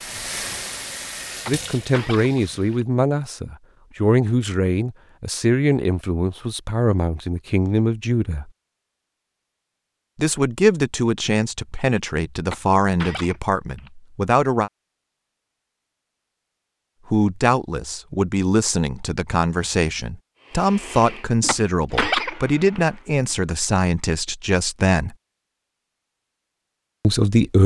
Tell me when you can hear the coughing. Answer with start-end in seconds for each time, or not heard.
1.4-2.9, 12.5-13.9, 21.4-22.9.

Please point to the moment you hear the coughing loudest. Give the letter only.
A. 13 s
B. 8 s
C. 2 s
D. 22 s
D.